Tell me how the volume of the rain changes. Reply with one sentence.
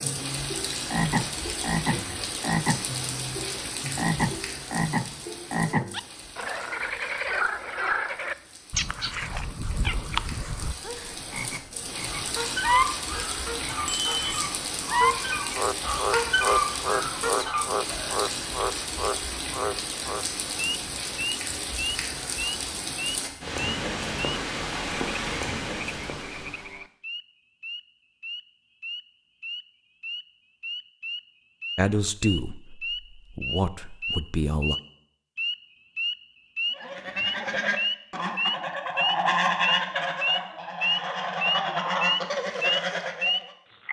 The volume of the rain goes down, then up.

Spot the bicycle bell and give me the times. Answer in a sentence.
You can hear the bicycle bell from 13.8 to 14.4 s.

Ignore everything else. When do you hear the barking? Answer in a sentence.
The barking can't be heard in this clip.